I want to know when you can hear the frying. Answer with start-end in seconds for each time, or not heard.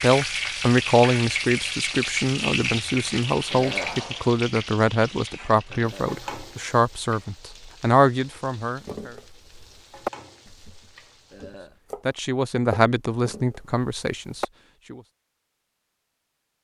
0.0-11.6.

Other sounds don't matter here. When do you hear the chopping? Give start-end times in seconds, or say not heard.
8.8-14.4.